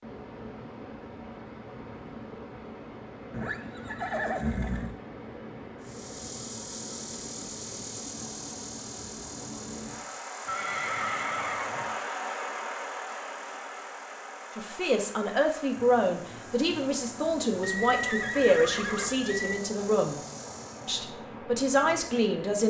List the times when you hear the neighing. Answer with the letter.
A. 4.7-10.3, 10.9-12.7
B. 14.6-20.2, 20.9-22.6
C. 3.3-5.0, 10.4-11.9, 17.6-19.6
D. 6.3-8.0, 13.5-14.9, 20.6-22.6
C.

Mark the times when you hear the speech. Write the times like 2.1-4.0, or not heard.
14.6-20.2, 20.9-22.6.